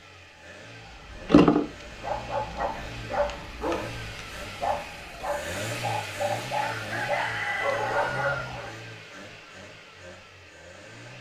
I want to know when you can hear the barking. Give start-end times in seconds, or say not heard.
1.1-8.8.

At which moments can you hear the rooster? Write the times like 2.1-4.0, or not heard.
6.6-8.6.